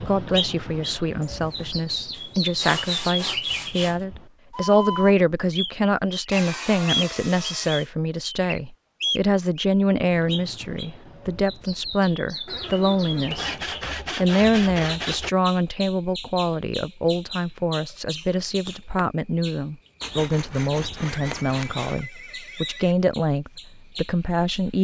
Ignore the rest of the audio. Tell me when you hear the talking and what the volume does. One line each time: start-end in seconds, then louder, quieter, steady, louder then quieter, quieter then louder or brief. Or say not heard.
0.0-24.8 steady.